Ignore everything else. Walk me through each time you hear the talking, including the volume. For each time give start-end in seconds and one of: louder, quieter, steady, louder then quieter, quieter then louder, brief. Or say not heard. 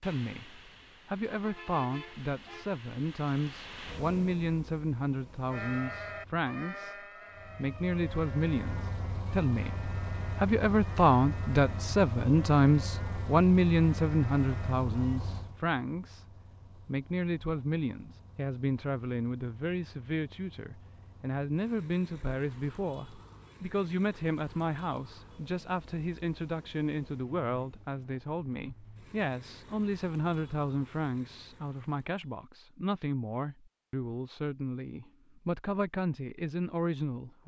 0.0-37.4 louder then quieter.